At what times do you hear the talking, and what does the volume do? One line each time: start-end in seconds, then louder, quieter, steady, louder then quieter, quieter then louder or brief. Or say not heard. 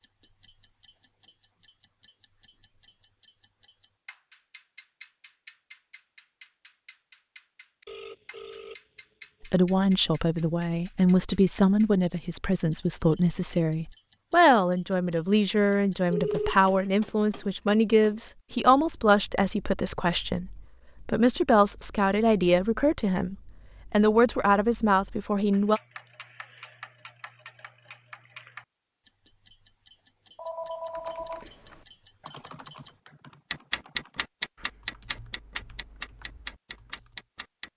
9.4-25.8 steady.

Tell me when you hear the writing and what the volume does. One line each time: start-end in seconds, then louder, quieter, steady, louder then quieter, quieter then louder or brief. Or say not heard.
not heard.